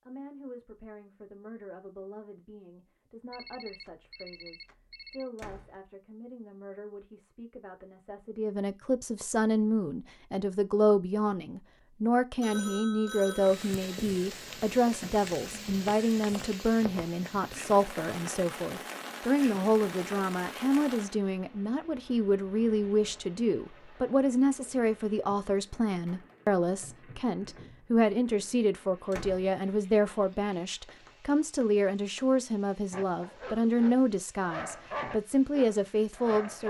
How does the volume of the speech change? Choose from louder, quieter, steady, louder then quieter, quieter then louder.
louder.